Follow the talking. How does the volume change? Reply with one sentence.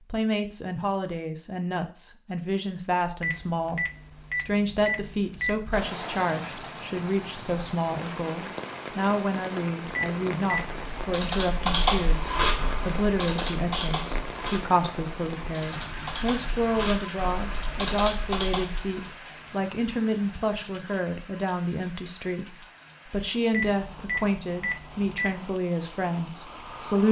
The volume of the talking stays about the same.